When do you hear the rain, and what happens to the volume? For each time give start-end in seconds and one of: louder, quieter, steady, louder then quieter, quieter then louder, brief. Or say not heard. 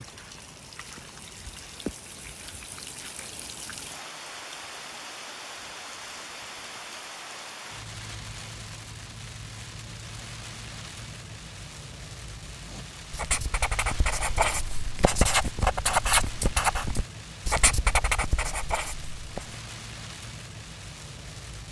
0.0-21.6 steady.